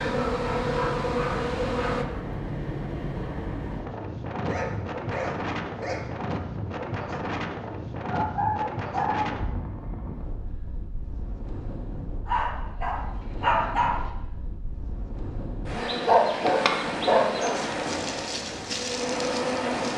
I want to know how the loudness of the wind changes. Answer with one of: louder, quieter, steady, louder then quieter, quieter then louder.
quieter then louder.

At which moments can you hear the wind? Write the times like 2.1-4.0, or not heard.
0.0-19.9.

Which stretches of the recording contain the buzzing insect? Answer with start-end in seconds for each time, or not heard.
0.0-2.0, 15.7-19.9.